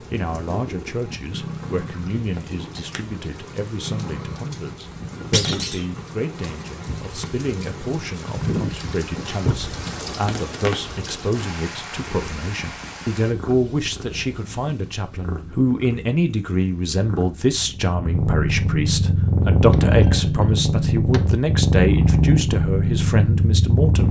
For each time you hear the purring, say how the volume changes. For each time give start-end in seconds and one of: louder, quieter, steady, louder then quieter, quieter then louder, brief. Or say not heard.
0.0-24.0 louder.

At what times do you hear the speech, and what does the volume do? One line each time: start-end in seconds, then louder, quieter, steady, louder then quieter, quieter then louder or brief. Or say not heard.
0.0-24.0 louder.